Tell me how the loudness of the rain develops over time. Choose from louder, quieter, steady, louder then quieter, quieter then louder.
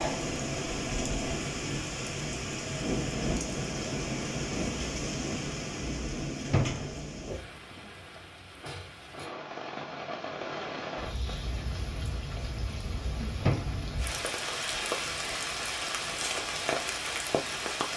quieter then louder.